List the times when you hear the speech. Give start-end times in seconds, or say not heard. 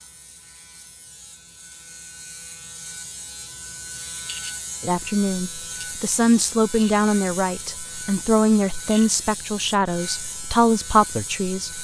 4.8-11.7.